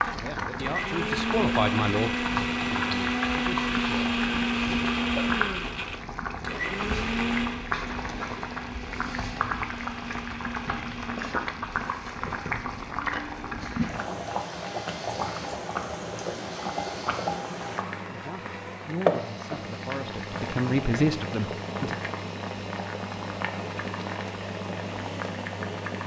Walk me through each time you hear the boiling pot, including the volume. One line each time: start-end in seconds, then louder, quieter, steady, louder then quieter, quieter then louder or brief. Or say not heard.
0.0-26.0 steady.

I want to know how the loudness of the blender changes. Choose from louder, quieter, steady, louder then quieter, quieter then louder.
quieter.